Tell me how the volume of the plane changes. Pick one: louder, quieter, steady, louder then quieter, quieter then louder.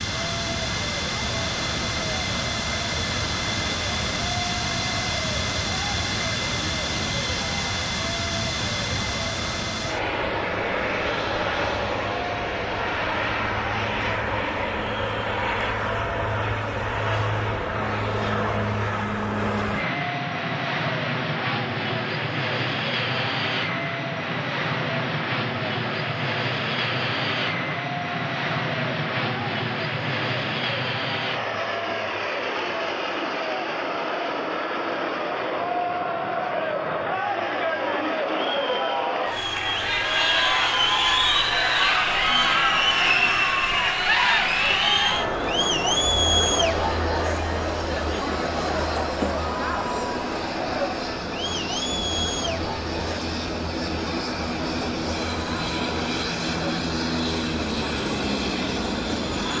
quieter then louder.